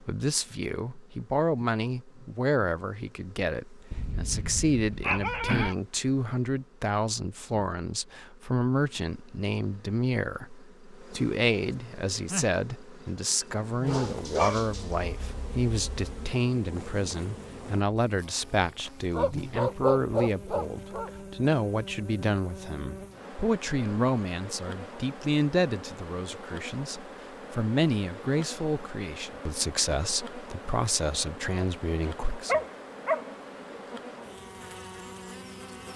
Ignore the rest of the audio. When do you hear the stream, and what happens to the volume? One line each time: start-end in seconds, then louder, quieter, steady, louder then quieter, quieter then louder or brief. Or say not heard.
not heard.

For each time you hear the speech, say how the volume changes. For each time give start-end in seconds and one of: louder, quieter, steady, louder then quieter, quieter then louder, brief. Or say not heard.
0.0-32.6 steady.